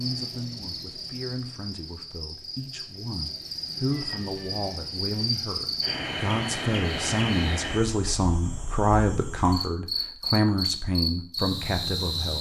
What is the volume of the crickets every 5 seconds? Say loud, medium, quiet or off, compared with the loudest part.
medium, loud, loud.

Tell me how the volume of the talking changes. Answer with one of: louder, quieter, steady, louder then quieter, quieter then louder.
louder.